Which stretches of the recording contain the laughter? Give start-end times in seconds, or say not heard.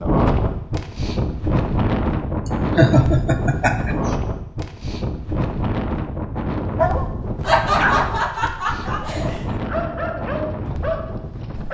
2.8-4.1, 7.4-9.6.